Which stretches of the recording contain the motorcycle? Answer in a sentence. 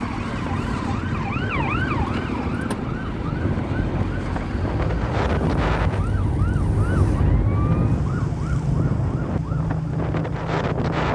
The motorcycle can be heard from 0.0 to 5.2 s.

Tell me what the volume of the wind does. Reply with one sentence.
The loudness of the wind stays about the same.